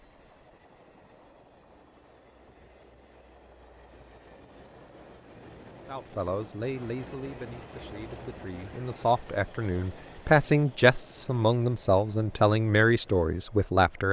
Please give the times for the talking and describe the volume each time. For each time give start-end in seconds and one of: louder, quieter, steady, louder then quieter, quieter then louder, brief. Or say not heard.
5.8-14.0 louder.